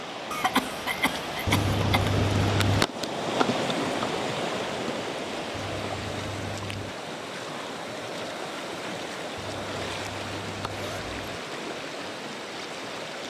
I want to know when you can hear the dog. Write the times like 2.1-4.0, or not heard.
not heard.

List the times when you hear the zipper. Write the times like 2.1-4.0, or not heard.
1.4-2.9, 5.5-7.0, 9.3-11.3.